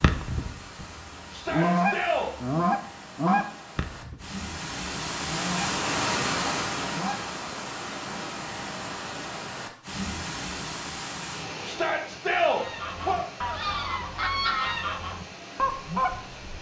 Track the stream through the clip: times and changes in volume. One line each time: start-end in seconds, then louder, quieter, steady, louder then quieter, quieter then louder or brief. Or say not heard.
0.0-16.5 louder then quieter.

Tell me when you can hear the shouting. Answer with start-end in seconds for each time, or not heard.
1.3-2.3, 11.7-13.2.